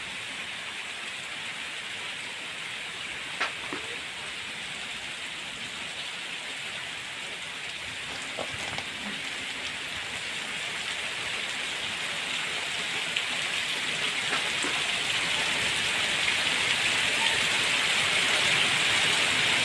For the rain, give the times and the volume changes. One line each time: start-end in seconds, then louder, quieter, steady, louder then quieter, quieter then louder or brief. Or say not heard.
0.0-19.6 louder.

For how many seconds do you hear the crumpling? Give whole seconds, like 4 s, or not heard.
3 s.